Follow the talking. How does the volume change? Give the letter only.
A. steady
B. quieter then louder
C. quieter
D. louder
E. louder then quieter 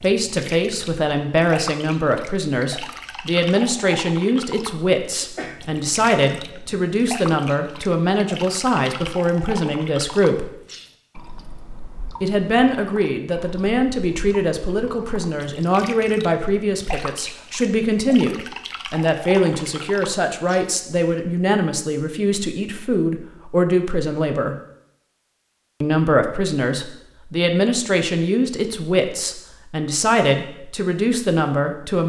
A.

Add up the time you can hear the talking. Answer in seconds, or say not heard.
29 s.